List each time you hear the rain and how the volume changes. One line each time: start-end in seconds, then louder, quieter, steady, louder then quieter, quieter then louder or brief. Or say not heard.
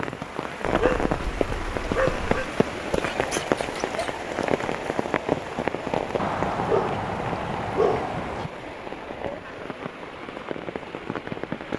0.0-11.7 quieter.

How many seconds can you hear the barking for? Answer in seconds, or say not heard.
4 s.